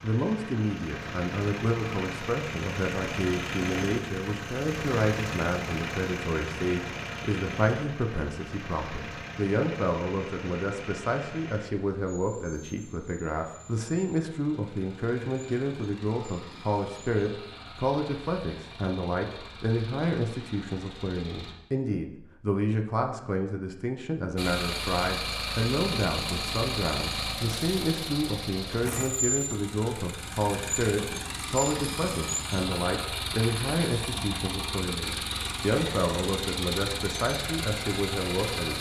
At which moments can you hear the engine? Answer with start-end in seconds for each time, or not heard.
0.0-21.6, 24.4-38.7.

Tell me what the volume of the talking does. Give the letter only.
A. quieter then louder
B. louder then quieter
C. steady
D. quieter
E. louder
C.